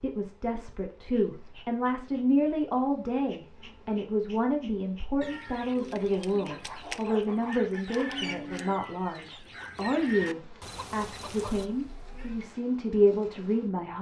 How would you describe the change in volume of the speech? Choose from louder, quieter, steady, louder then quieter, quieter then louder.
steady.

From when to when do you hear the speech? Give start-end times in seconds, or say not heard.
0.0-13.9.